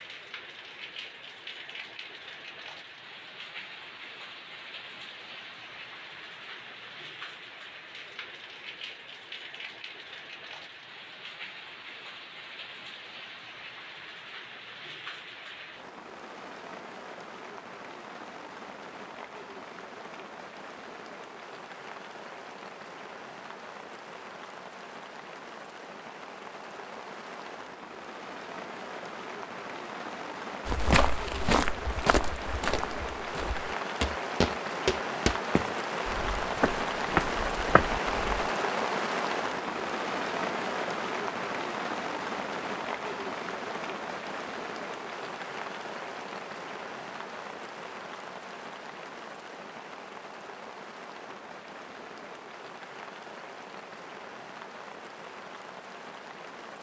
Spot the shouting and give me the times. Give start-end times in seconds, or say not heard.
not heard.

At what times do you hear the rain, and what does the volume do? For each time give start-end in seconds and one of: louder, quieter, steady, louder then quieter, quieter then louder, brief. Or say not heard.
0.0-56.7 louder then quieter.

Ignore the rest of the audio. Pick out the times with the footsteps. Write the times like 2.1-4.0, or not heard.
30.6-38.5.